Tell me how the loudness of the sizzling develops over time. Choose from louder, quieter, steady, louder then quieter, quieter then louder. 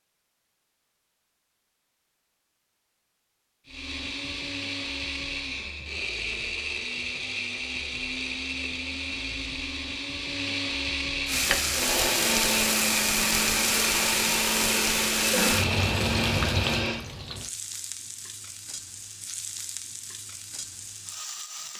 quieter.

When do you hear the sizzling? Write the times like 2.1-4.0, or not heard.
11.2-21.7.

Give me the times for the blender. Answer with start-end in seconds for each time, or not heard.
3.6-17.0.